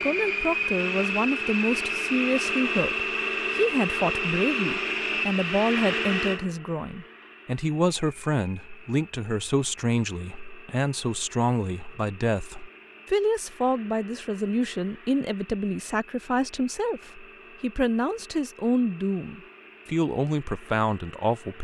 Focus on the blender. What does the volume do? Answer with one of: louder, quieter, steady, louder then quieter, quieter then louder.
quieter.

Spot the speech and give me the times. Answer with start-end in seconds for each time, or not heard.
0.0-21.5.